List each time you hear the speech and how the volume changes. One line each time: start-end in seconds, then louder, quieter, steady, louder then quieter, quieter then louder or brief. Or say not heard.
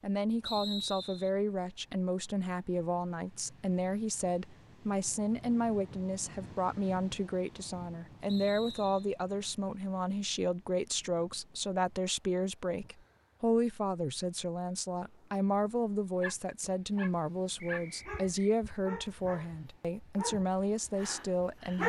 0.0-21.8 steady.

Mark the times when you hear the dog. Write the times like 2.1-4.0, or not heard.
16.2-21.8.